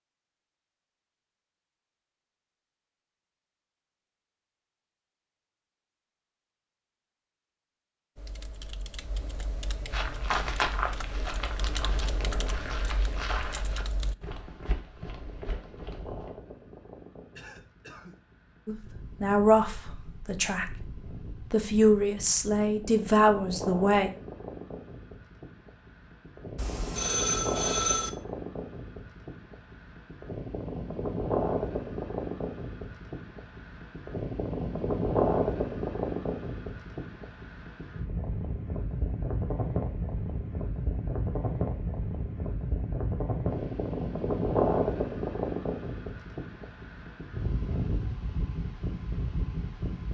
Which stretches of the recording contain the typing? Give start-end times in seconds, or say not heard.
8.2-14.2.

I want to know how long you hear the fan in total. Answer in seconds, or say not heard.
38 s.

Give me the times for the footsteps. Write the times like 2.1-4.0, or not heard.
9.9-16.4.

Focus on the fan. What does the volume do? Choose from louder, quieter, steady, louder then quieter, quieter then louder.
louder.